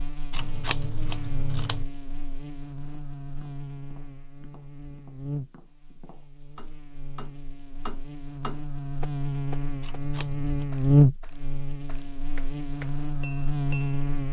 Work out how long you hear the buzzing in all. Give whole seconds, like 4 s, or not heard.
14 s.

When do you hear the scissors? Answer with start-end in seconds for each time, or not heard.
0.3-1.9, 9.8-10.7.